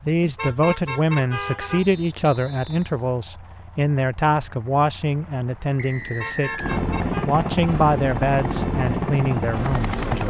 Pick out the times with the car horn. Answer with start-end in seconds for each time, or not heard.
0.3-1.9, 6.2-7.3.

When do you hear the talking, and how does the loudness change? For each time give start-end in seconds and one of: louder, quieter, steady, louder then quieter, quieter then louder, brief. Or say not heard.
0.1-10.2 steady.